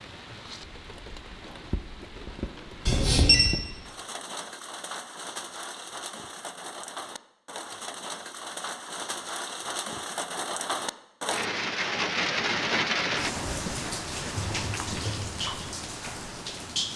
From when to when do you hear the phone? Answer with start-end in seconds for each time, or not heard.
2.9-3.5.